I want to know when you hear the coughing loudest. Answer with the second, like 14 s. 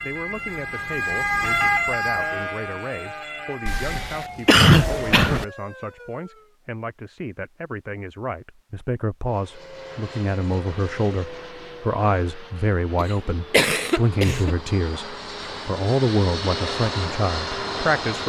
5 s.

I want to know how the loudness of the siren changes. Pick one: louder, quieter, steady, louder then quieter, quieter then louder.
quieter.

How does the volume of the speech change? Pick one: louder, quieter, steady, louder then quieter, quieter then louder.
louder.